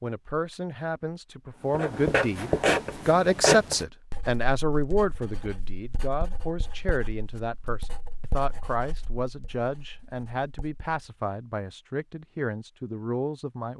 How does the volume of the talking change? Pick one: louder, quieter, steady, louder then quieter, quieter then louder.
louder then quieter.